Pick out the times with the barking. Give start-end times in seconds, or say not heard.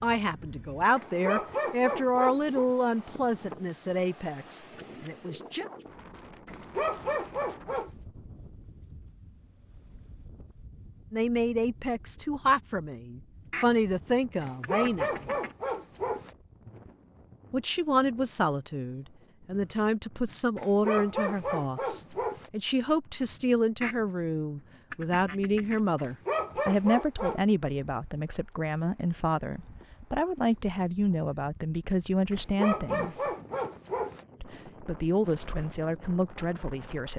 0.9-2.7, 6.5-7.9, 14.4-16.4, 20.6-22.5, 25.9-27.4, 32.3-34.2.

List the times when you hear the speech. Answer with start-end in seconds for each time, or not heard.
0.0-5.7, 11.1-15.1, 17.5-33.3, 34.4-37.1.